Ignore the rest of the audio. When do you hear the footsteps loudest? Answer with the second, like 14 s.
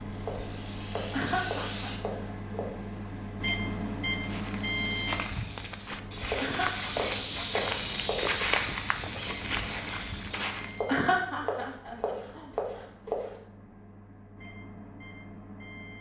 8 s.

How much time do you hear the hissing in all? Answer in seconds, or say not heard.
2 s.